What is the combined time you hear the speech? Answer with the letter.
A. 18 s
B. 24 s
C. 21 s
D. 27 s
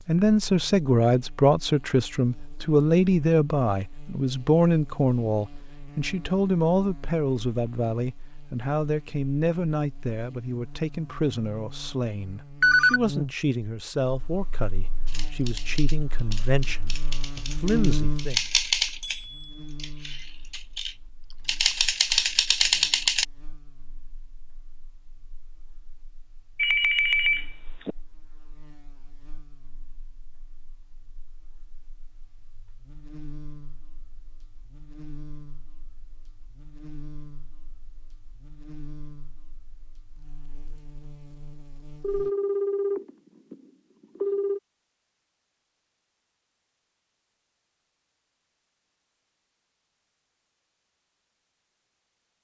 A.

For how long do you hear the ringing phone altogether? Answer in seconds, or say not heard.
4 s.